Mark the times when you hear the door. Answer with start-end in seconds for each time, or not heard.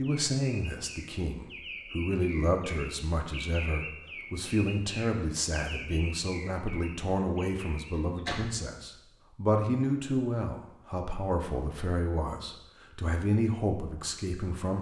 7.9-8.7.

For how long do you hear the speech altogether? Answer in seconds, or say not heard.
15 s.